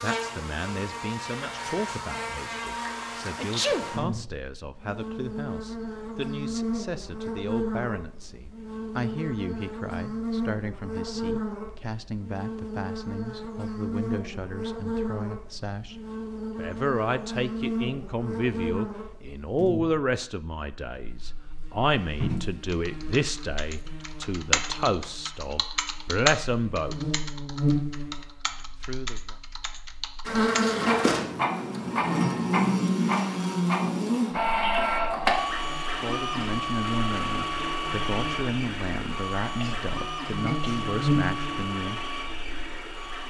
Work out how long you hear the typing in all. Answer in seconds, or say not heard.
9 s.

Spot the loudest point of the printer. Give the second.
35 s.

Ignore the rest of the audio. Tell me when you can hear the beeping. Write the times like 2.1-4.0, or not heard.
not heard.